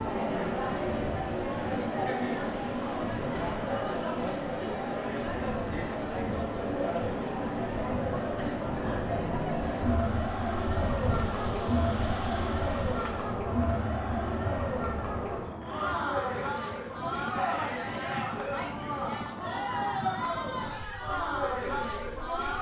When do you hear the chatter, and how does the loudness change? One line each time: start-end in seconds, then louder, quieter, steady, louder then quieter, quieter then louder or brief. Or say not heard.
0.0-22.5 steady.